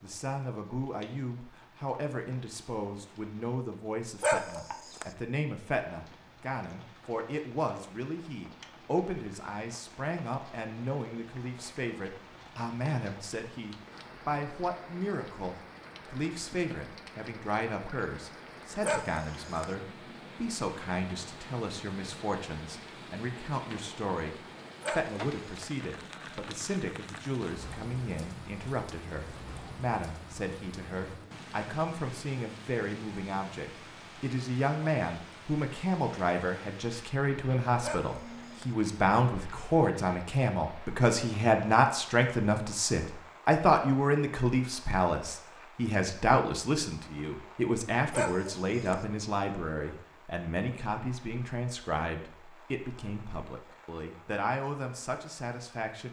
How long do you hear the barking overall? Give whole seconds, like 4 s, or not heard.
4 s.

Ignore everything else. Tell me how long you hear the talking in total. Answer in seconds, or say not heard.
56 s.